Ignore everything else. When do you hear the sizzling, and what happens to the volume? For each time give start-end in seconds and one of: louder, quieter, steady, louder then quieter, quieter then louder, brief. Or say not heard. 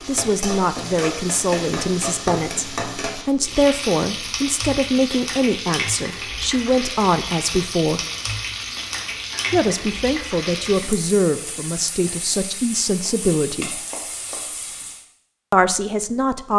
0.0-15.1 quieter.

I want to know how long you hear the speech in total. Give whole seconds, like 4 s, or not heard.
13 s.